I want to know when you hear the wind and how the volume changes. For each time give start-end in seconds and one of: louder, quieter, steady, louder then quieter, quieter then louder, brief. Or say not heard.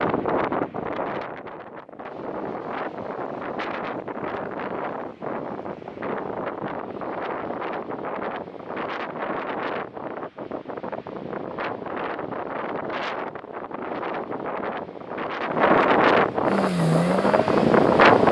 0.0-18.2 louder.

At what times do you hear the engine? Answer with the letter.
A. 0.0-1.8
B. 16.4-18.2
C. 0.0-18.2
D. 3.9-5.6
B.